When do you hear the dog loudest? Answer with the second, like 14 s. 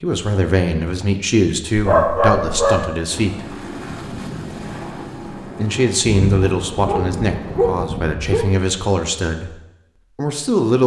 2 s.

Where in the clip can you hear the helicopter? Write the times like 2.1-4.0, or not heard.
3.0-7.8.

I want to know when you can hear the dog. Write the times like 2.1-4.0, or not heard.
1.8-2.9, 6.0-8.5.